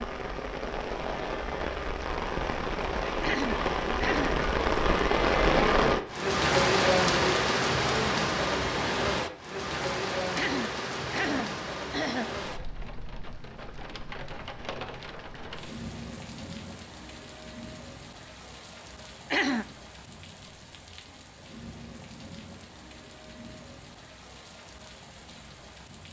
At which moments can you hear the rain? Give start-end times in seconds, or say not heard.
0.0-26.0.